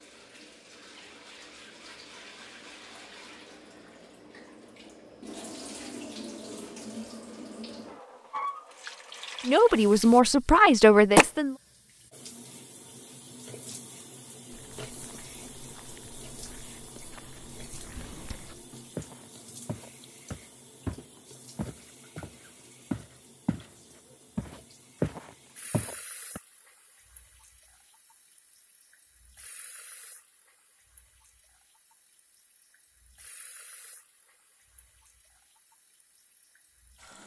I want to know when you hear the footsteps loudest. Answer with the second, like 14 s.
25 s.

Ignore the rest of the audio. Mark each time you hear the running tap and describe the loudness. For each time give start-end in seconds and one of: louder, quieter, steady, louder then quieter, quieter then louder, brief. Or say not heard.
0.0-37.2 louder then quieter.